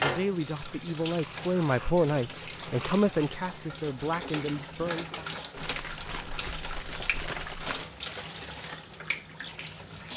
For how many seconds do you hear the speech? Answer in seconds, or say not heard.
5 s.